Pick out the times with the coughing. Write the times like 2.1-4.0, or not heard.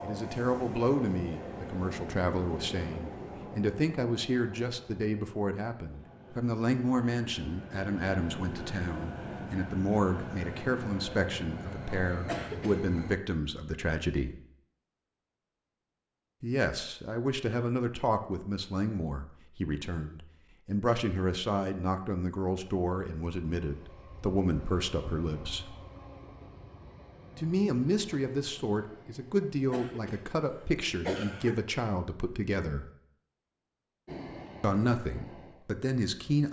12.2-12.8, 29.7-31.6.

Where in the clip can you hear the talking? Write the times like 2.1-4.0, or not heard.
0.0-14.3, 16.4-25.8, 27.4-32.9, 34.6-36.4.